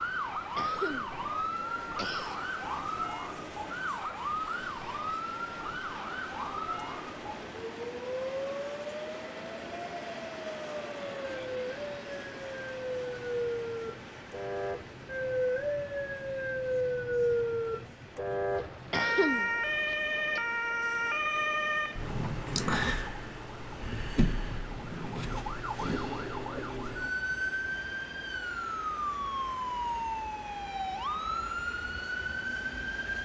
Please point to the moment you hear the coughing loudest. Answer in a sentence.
The volume of the coughing peaks at 19 seconds.